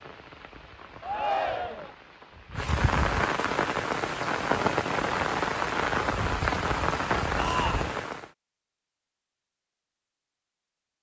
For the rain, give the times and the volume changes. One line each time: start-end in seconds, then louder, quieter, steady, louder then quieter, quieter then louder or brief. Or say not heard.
0.0-8.3 louder.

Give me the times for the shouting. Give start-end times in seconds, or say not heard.
1.0-1.9, 7.3-8.0.